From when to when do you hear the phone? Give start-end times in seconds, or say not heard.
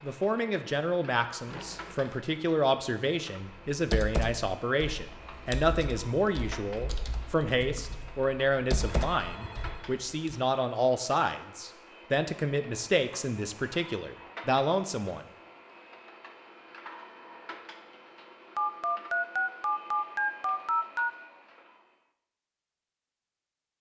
1.4-2.1, 8.8-9.9, 18.6-21.1.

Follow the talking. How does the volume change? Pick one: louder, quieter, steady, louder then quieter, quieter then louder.
steady.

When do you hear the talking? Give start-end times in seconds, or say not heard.
0.0-15.2.